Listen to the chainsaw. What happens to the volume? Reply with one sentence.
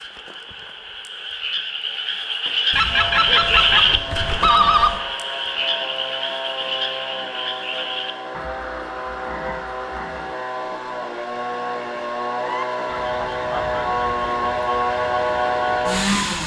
The volume of the chainsaw goes up.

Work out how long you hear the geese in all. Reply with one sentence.
The geese can be heard for 3 seconds in total.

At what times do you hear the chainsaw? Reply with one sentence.
You can hear the chainsaw from 2.9 to 16.4 s.